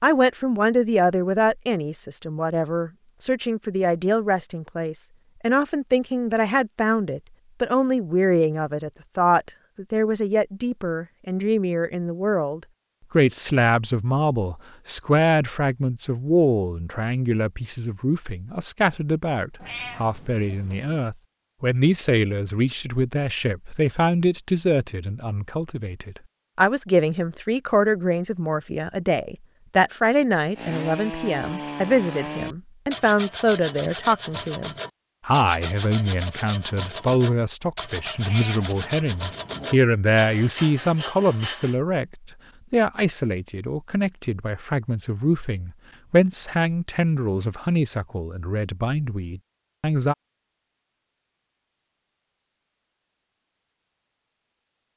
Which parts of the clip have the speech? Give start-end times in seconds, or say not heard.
0.0-50.1.